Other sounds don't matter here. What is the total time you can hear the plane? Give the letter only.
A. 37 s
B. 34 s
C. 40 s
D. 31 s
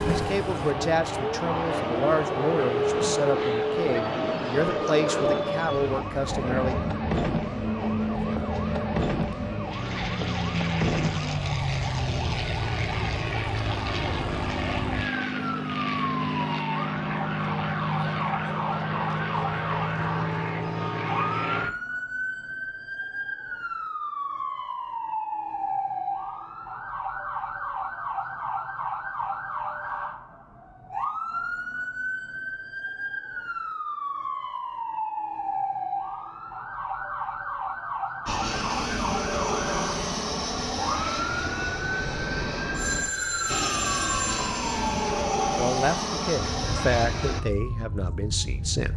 D.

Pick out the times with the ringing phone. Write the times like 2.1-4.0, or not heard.
42.7-45.2.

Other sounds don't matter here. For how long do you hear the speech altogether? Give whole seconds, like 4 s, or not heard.
10 s.